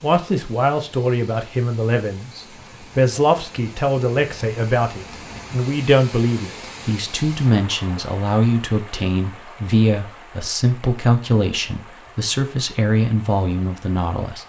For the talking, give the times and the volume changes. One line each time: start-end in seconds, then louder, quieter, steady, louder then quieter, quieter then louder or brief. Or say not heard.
0.0-14.4 steady.